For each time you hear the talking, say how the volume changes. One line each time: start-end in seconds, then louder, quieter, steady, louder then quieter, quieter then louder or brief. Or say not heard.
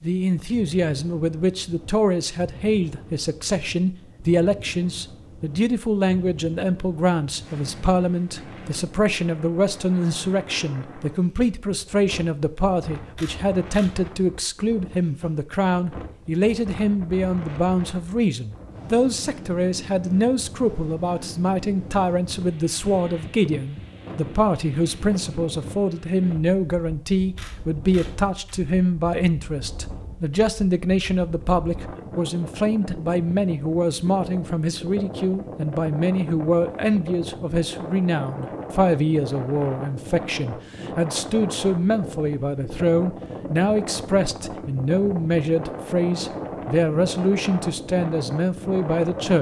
0.0-49.3 steady.